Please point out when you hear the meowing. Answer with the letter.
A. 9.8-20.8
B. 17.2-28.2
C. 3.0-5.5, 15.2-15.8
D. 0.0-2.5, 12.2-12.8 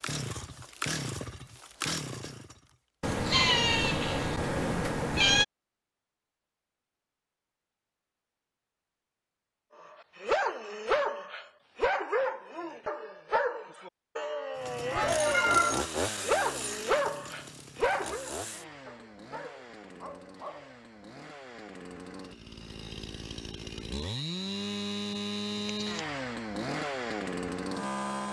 C.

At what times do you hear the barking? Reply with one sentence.
You can hear the barking from 9.8 to 20.8 s.